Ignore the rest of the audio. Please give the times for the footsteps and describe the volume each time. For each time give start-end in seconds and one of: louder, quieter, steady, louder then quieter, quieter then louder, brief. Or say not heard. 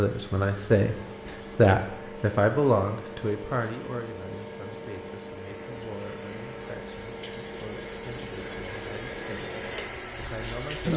not heard.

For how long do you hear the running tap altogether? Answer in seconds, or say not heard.
11 s.